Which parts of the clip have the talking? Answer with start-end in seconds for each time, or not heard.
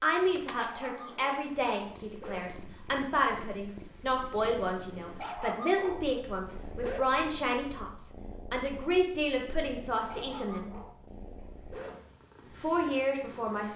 0.0-10.8, 12.6-13.7.